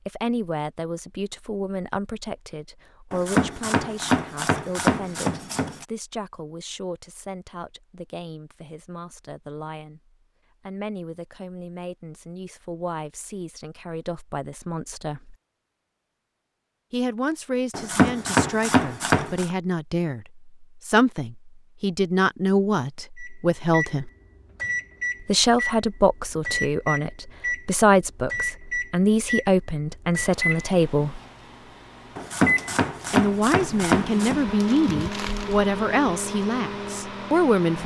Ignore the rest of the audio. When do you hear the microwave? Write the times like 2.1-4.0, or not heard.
23.1-37.8.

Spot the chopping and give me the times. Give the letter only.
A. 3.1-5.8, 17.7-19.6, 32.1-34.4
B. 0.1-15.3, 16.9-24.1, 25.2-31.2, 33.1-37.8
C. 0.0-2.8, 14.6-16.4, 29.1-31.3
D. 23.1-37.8
A.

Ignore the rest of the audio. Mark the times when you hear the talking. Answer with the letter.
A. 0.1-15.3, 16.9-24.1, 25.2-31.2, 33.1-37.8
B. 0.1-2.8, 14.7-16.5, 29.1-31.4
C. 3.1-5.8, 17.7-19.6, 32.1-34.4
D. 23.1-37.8
A.